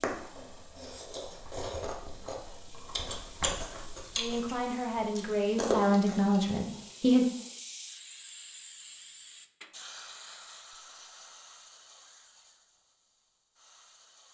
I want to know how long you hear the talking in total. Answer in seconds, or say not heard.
3 s.